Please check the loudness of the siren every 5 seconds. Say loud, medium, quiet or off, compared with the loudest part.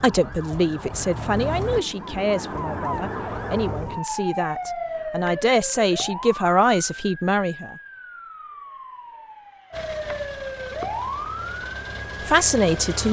loud, medium, loud.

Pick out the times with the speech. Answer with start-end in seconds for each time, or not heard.
0.0-7.8, 12.2-13.0.